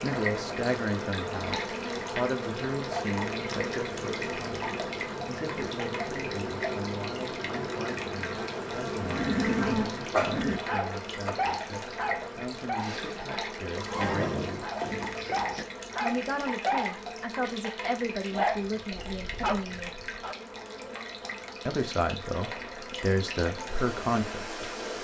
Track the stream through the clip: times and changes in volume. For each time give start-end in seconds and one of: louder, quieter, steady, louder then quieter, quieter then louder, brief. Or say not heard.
0.0-24.9 steady.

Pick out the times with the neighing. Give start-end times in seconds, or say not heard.
9.0-10.6, 13.8-15.7.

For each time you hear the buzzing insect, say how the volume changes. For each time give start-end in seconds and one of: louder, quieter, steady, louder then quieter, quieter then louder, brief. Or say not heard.
0.0-24.9 quieter.